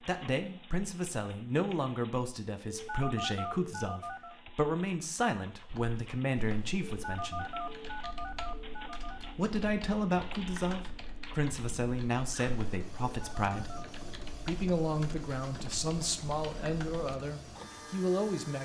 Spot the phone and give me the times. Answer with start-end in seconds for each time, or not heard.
2.6-4.3, 7.0-9.3, 13.2-13.8.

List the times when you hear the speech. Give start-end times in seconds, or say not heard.
0.1-7.5, 9.3-13.8, 14.4-18.6.